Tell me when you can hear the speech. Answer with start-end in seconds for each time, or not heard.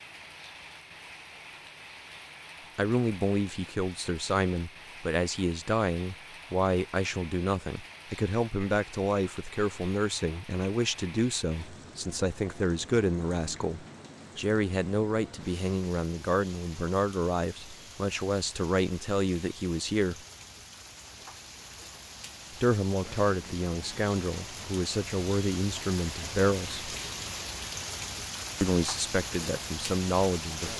2.8-20.2, 22.6-26.9, 28.6-30.7.